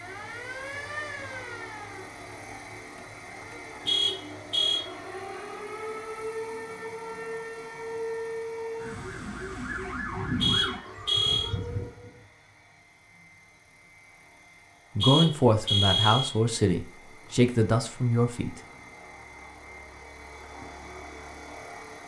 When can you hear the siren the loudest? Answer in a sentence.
The volume of the siren peaks at 10 seconds.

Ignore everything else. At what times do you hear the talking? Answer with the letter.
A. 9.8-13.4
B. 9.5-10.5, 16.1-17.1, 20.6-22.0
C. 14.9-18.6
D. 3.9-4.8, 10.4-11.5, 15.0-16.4
C.